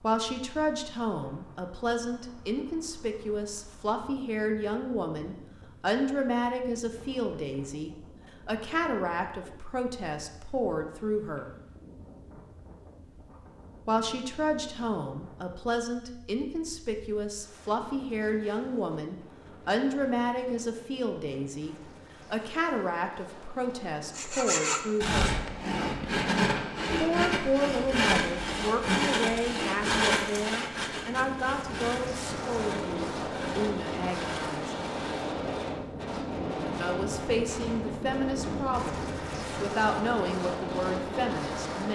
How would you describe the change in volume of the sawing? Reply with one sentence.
The loudness of the sawing goes down.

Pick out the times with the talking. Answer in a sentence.
The talking can be heard from 0.0 to 11.5 s, from 13.8 to 25.3 s, from 26.9 to 34.8 s and from 36.8 to 41.9 s.